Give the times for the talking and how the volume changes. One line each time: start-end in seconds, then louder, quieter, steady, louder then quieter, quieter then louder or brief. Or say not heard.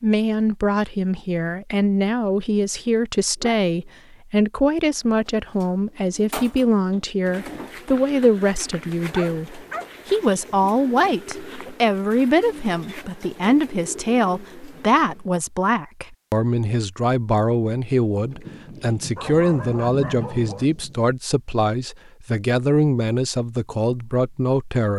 0.0-24.9 steady.